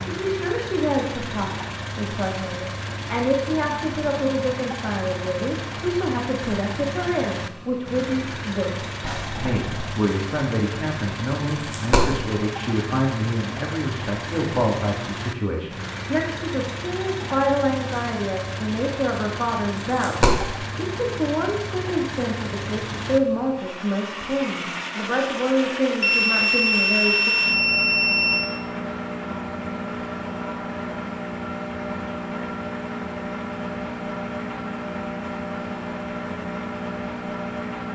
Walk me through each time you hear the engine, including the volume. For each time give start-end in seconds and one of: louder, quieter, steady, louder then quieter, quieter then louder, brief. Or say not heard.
0.0-37.9 steady.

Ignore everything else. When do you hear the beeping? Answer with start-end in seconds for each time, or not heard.
9.0-9.9, 26.0-28.6.